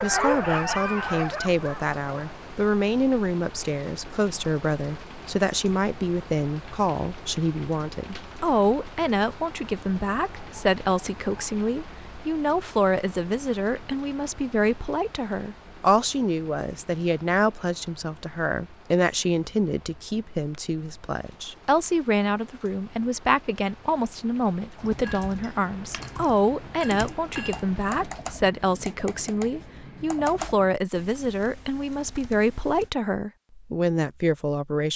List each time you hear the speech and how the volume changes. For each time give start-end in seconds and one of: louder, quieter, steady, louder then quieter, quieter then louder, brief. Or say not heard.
0.0-34.9 steady.